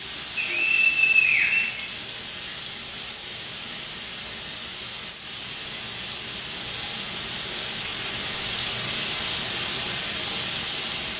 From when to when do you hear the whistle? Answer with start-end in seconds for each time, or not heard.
0.3-1.9.